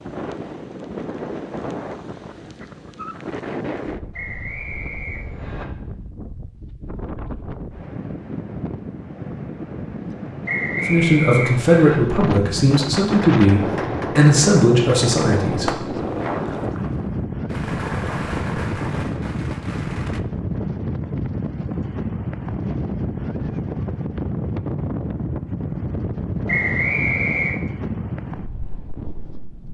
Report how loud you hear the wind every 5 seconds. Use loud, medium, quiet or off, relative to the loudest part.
medium, medium, loud, loud, loud, loud.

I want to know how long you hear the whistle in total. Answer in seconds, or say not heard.
4 s.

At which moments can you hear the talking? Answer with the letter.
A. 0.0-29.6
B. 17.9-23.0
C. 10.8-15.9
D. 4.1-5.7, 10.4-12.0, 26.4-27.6
C.